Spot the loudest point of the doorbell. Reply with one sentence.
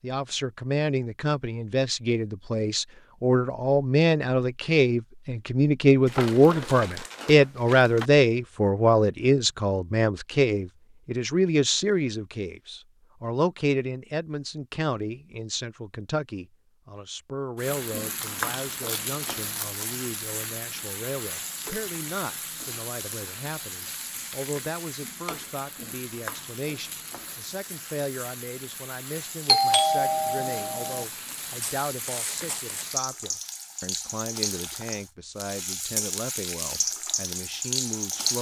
The volume of the doorbell peaks at 30 seconds.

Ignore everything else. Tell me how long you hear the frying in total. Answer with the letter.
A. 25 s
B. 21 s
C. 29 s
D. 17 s
B.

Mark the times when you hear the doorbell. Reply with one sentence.
The doorbell can be heard from 29.4 to 31.1 s.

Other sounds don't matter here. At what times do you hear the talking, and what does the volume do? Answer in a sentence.
The talking can be heard from 0.0 to 38.3 s, getting quieter.